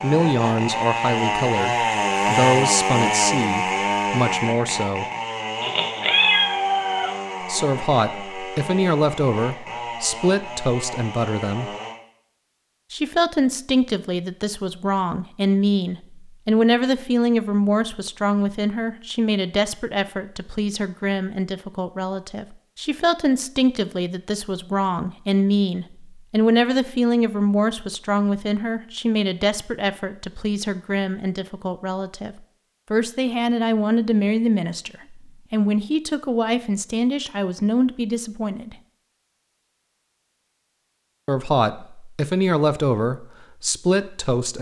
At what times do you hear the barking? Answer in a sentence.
You can't hear the barking here.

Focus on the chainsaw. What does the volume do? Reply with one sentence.
The loudness of the chainsaw goes down.